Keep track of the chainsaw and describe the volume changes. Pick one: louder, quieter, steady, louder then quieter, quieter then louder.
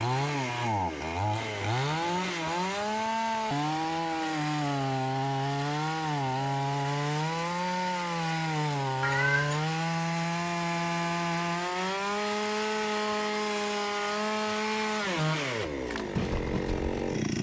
steady.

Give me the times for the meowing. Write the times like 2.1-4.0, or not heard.
9.0-9.7.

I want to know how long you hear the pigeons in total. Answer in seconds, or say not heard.
not heard.